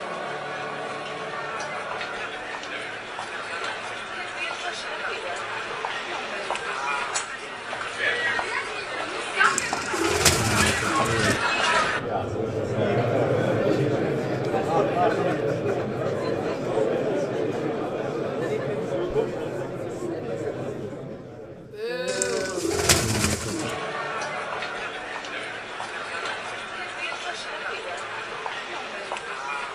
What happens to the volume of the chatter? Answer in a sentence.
The volume of the chatter goes up, then down.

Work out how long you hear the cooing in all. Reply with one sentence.
You can hear the cooing for 4 seconds altogether.